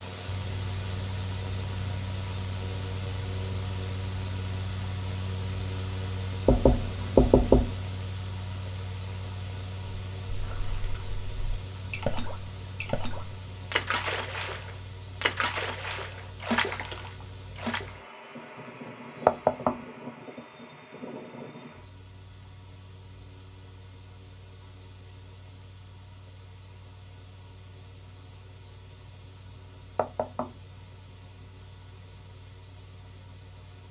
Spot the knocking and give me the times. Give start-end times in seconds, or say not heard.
6.5-7.8, 19.2-19.8, 29.9-30.5.